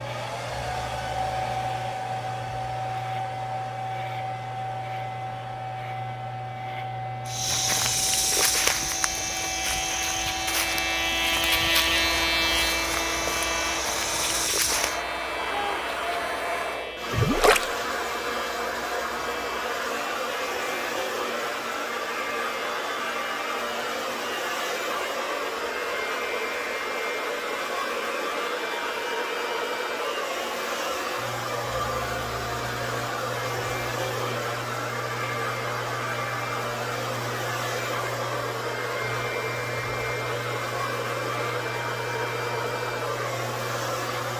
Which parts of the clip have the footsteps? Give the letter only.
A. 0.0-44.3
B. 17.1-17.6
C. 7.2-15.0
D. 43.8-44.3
C.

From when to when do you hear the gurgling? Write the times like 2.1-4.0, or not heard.
17.1-17.6.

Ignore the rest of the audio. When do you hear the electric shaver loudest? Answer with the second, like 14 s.
12 s.